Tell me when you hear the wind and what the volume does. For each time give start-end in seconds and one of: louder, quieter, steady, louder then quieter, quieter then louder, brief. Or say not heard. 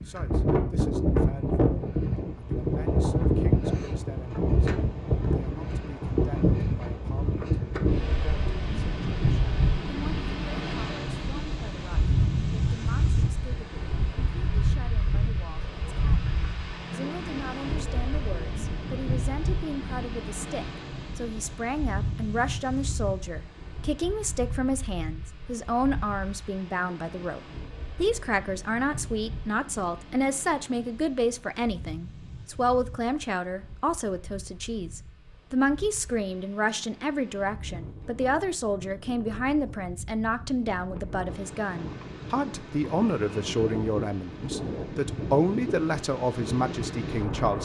0.0-47.6 quieter then louder.